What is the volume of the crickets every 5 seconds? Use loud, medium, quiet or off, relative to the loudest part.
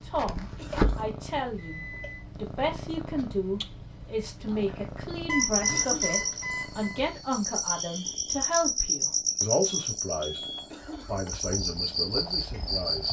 off, loud, loud.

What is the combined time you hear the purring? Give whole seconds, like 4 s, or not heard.
13 s.